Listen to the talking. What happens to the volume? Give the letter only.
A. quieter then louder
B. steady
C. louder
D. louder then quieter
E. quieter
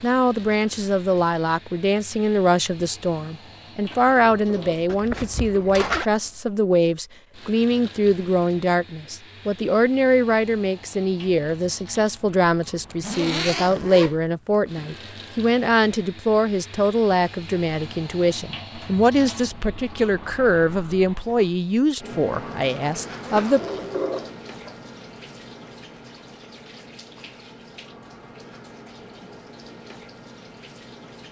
B.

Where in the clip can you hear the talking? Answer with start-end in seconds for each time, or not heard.
0.0-23.6.